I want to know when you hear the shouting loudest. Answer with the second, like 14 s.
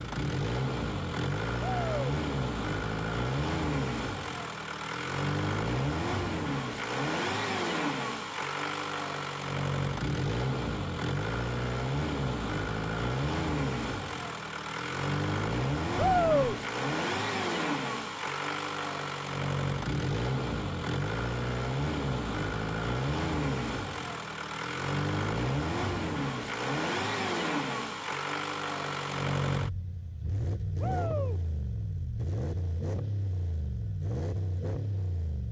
16 s.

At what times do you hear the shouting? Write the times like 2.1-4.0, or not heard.
1.6-2.0, 15.9-16.6, 30.8-31.4.